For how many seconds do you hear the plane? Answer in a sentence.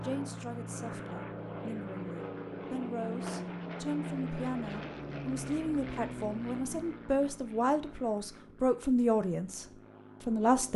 The plane can be heard for 11 seconds in total.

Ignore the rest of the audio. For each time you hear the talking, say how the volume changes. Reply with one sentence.
The talking can be heard from 0.0 to 10.7 s, getting louder.